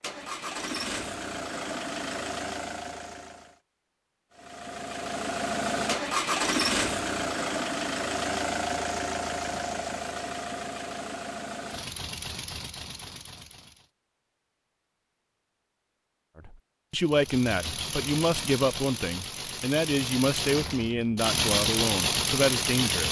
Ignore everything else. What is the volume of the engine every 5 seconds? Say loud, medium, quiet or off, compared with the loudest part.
medium, loud, medium, medium, loud.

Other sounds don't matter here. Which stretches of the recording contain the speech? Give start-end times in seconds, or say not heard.
16.4-23.0.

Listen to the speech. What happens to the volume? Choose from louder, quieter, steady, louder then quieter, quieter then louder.
steady.